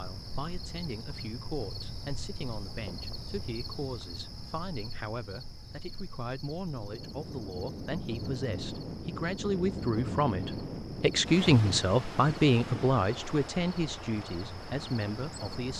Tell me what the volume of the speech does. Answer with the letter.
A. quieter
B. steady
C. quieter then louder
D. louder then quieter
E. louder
E.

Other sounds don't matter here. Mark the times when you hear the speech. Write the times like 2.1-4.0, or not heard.
0.0-15.7.